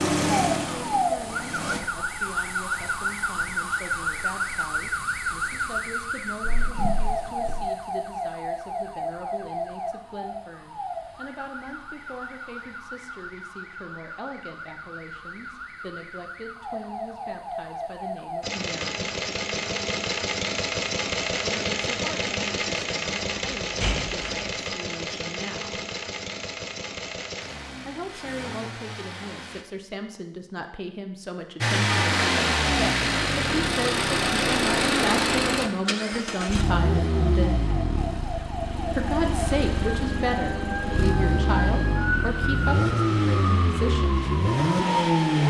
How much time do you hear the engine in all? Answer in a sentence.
The engine can be heard for 27 seconds in total.